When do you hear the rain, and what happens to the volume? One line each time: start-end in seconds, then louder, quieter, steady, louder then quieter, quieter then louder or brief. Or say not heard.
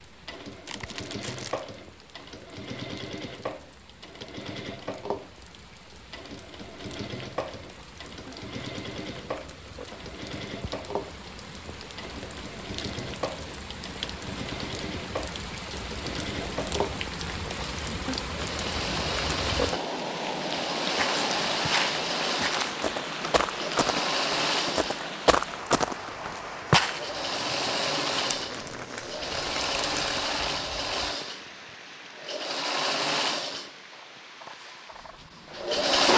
0.0-36.0 louder then quieter.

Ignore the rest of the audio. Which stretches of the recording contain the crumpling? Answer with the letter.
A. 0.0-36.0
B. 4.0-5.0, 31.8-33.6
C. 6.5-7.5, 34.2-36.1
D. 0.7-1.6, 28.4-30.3
D.